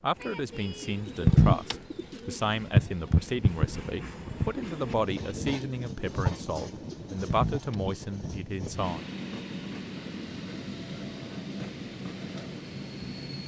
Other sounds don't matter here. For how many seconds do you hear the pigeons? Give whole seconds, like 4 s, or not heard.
7 s.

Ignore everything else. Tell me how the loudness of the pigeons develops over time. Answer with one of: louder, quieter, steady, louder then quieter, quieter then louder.
quieter then louder.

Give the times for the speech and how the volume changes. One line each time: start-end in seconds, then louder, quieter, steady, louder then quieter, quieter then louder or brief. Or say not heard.
0.0-9.1 steady.